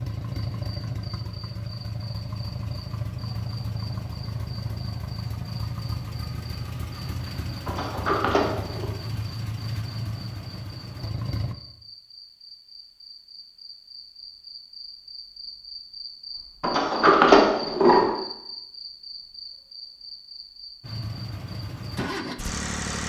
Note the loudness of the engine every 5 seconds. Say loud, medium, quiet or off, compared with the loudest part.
loud, loud, loud, off, loud.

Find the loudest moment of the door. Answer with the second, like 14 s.
17 s.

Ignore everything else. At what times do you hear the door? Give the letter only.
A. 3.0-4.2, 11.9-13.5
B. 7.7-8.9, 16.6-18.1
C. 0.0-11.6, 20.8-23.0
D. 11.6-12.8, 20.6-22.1
B.